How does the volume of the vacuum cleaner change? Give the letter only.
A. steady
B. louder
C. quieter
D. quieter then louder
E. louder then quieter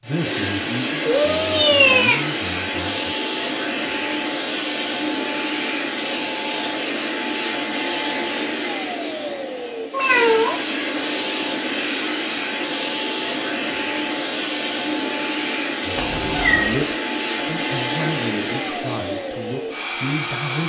A.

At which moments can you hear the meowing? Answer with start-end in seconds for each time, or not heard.
1.1-2.2, 9.9-10.6, 15.9-16.8.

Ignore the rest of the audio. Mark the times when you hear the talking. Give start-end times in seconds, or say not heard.
0.0-3.1, 16.0-20.6.